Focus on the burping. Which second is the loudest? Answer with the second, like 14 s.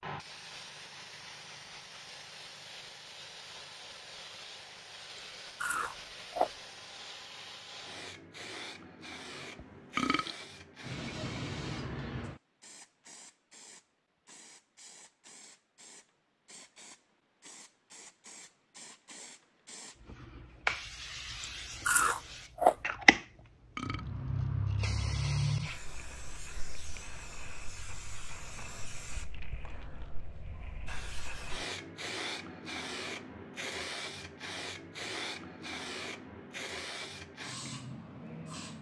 10 s.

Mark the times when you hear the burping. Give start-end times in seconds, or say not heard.
9.3-10.3, 23.1-24.1.